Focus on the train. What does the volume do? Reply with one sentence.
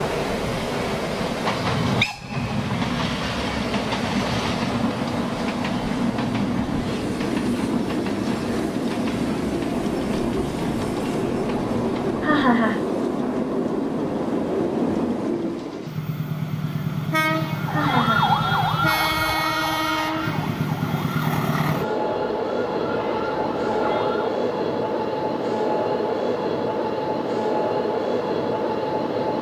The loudness of the train stays about the same.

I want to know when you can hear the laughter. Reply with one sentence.
You can hear the laughter from 12.2 to 12.8 s and from 17.7 to 18.6 s.